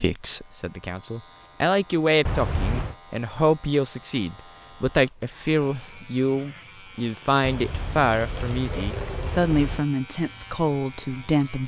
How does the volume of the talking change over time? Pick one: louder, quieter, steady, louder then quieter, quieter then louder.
steady.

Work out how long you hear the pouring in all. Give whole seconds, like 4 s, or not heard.
3 s.